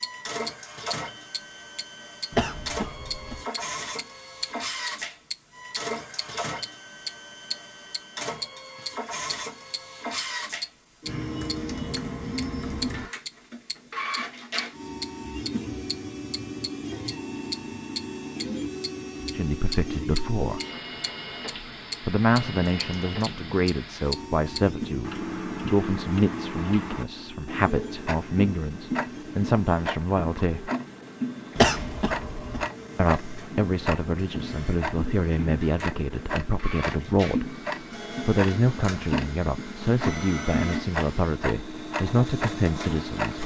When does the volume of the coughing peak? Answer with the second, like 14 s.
32 s.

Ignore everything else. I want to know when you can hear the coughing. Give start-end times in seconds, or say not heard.
2.3-3.4, 31.6-32.6.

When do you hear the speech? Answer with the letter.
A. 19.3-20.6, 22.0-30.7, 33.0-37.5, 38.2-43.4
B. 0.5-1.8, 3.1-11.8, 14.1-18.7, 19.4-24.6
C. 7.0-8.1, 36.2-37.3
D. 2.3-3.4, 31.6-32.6
A.